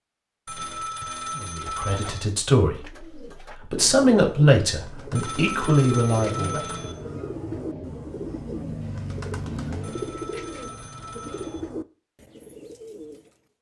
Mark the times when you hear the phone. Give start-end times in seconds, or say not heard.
0.5-2.2, 5.2-7.0, 9.8-11.6.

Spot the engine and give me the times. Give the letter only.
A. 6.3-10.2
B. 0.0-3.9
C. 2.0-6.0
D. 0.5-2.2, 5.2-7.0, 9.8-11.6
A.